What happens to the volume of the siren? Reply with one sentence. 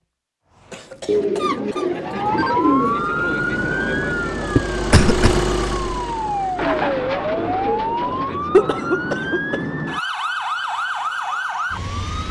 The volume of the siren stays about the same.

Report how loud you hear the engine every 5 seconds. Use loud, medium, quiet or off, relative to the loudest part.
medium, loud, off.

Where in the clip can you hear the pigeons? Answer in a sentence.
The pigeons can be heard from 1.1 to 3.2 s and from 6.5 to 8.3 s.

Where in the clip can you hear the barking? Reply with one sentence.
You can't hear the barking here.